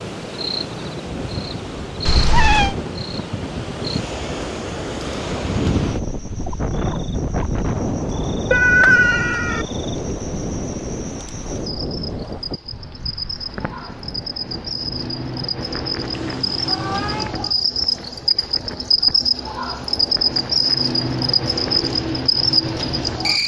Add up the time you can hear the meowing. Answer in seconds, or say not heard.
3 s.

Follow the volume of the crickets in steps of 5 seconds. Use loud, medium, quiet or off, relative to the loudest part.
quiet, quiet, quiet, loud, loud.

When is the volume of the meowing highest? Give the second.
9 s.